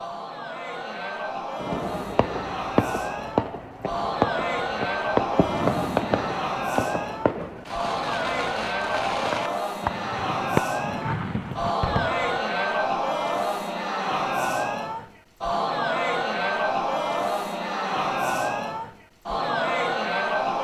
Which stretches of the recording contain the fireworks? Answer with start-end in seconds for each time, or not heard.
1.6-12.2.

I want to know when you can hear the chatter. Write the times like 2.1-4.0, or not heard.
0.0-20.5.